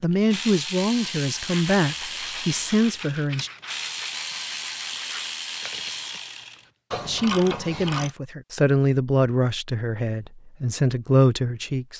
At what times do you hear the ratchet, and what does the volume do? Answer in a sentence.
The ratchet can be heard from 0.2 to 8.2 s, at a steady volume.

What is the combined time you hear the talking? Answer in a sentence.
You can hear the talking for 8 seconds altogether.